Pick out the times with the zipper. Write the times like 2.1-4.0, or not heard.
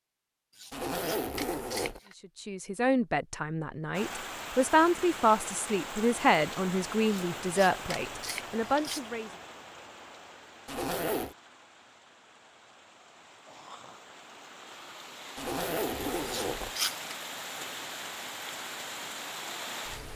0.7-2.0, 10.7-11.3, 15.3-16.7.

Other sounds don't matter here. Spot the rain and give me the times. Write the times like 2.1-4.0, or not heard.
3.9-20.1.